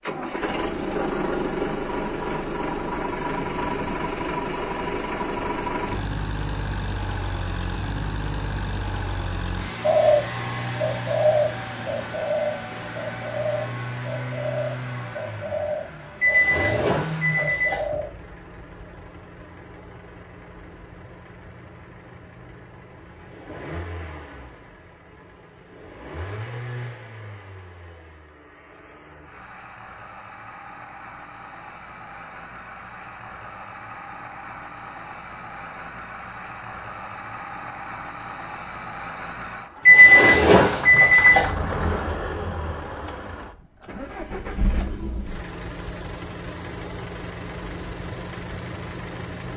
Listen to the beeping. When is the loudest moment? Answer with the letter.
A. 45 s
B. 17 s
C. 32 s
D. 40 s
D.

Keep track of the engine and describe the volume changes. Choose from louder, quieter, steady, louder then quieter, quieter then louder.
quieter then louder.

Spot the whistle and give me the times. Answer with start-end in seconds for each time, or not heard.
not heard.